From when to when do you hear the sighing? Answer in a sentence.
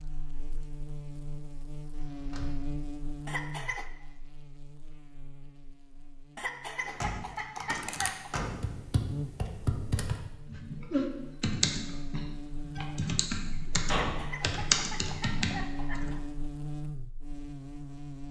The sighing can't be heard in this clip.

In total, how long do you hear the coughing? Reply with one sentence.
You can hear the coughing for 5 seconds altogether.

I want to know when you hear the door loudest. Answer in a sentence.
The volume of the door peaks at 14 seconds.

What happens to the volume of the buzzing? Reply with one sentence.
The loudness of the buzzing goes down, then up.